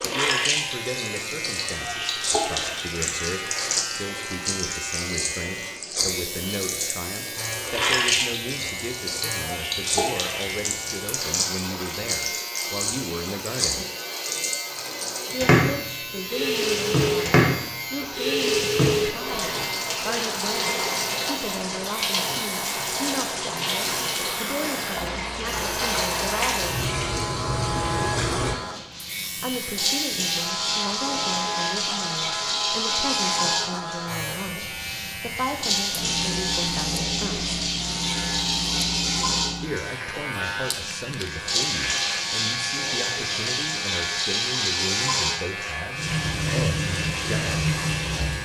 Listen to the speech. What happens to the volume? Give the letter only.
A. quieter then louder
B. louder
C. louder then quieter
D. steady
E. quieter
D.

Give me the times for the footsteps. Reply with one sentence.
You can't hear the footsteps here.